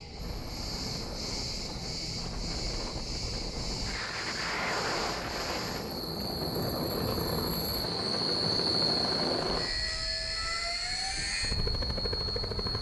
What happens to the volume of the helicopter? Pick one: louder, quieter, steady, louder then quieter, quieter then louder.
louder.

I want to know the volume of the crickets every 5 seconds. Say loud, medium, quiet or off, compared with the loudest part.
medium, loud, loud.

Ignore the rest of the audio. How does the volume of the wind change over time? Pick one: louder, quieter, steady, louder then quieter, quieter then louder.
louder then quieter.